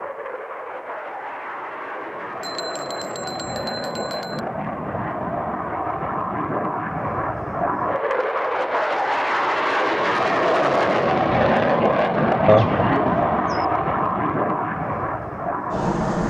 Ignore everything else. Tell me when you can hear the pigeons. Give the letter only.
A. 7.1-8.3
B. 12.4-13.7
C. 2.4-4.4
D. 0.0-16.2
B.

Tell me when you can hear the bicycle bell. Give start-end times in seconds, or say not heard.
2.4-4.4.